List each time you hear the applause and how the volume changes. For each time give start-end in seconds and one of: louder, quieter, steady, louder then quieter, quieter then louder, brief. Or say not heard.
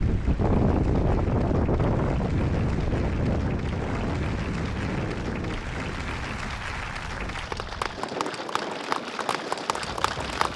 0.0-10.5 louder.